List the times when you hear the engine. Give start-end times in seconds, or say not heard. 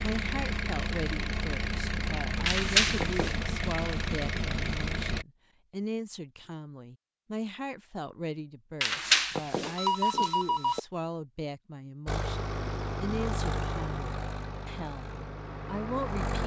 0.0-5.2, 12.1-16.4.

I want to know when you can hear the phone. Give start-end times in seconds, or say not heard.
2.5-3.4, 8.8-10.8.